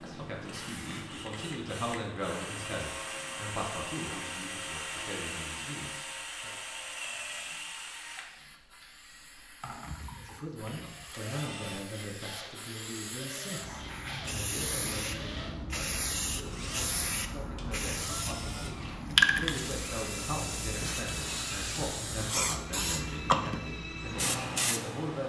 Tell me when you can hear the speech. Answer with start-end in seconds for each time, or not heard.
0.0-6.6, 10.2-25.2.